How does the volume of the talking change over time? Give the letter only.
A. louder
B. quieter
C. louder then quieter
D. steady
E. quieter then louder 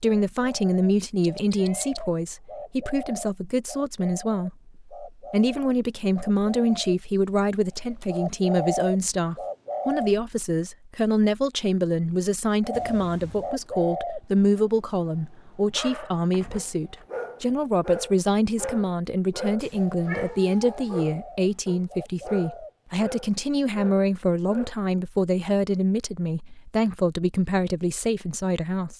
D.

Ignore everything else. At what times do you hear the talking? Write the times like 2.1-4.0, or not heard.
0.0-28.9.